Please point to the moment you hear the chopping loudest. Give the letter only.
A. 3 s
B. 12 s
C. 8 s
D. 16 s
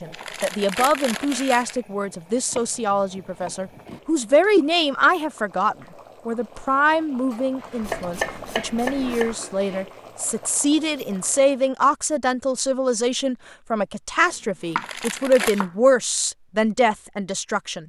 C.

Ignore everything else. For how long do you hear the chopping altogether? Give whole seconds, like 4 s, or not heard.
4 s.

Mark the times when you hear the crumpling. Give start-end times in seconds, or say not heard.
0.1-1.8, 14.8-15.7.